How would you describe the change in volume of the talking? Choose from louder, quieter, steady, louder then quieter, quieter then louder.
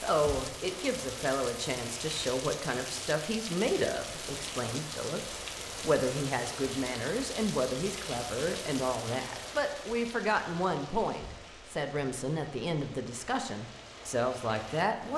steady.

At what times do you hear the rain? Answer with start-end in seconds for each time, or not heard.
0.0-15.1.